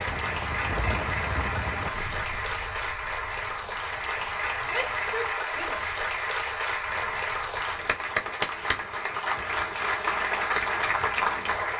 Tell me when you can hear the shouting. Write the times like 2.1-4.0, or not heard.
4.7-6.0.